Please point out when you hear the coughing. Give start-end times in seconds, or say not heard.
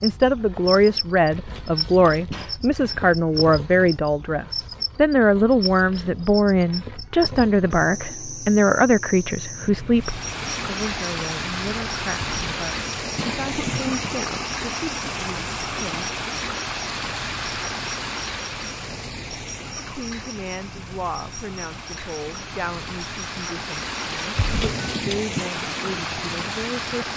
1.3-2.6, 12.2-14.1, 24.4-25.4.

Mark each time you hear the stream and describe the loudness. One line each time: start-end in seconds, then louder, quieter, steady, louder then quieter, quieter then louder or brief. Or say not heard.
9.9-27.1 quieter then louder.